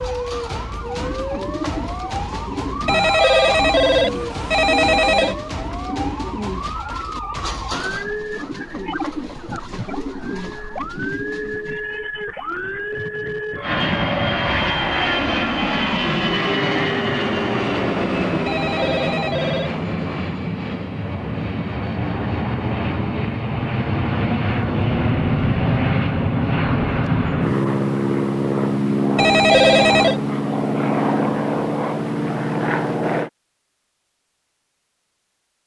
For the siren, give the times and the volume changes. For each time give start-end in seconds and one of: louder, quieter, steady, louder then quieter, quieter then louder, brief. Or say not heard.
0.0-19.1 steady.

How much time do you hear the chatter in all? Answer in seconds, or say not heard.
not heard.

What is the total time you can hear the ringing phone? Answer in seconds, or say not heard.
5 s.